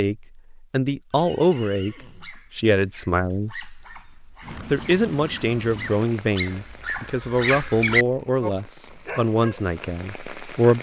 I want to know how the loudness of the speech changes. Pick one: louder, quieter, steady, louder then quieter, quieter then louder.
steady.